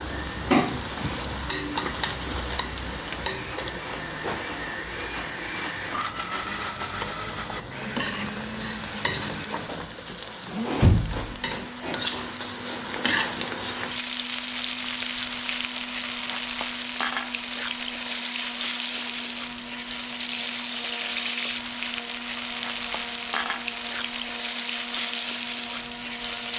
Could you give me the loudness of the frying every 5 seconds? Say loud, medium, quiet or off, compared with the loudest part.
loud, medium, loud, loud, loud, loud.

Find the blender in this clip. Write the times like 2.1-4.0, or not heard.
0.0-26.5.